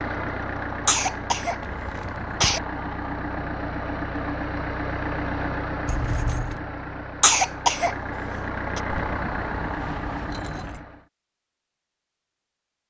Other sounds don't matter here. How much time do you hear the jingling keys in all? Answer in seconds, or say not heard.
4 s.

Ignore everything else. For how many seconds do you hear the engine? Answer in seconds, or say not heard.
11 s.